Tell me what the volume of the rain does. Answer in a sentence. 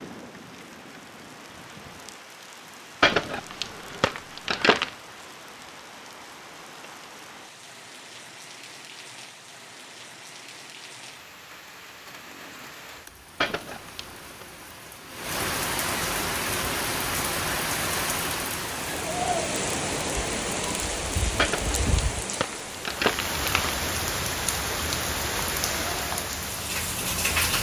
The volume of the rain goes up.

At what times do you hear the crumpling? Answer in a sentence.
The crumpling can be heard from 3.0 to 5.0 s, from 13.4 to 14.4 s and from 21.4 to 23.8 s.